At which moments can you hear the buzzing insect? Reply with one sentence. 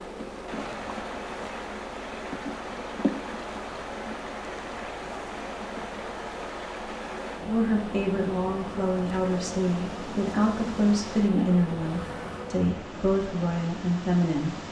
You can hear the buzzing insect from 0.0 to 12.6 s.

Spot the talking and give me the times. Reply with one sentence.
You can hear the talking from 7.5 to 14.6 s.